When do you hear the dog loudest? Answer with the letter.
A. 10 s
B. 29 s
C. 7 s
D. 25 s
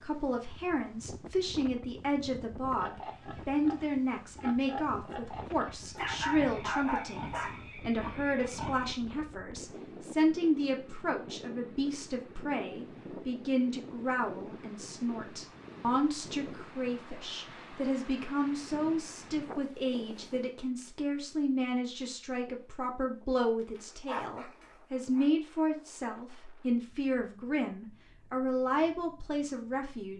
C.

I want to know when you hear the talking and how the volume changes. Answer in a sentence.
You can hear the talking from 0.0 to 30.1 s, at a steady volume.